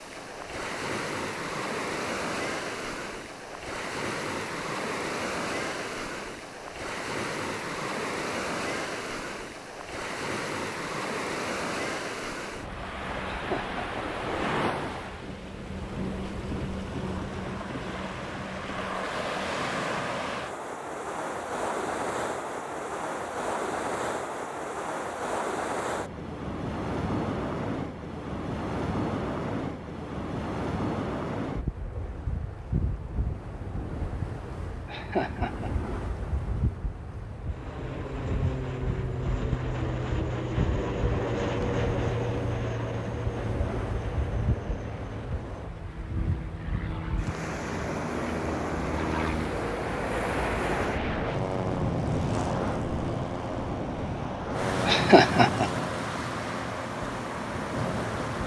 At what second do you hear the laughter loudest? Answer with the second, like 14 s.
55 s.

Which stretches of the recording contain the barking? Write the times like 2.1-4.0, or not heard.
not heard.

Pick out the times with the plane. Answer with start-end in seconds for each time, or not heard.
37.4-58.4.